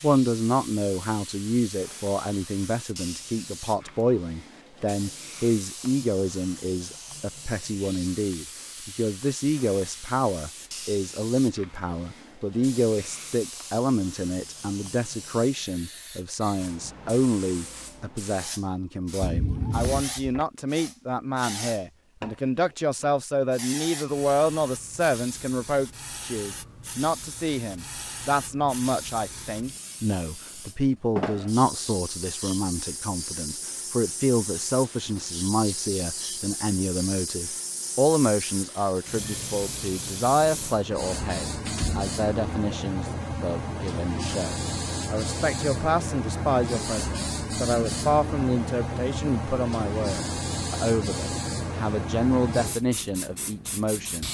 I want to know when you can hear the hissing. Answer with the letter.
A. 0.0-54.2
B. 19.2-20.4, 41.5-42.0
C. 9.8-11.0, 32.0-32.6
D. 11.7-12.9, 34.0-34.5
A.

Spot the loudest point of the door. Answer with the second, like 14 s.
20 s.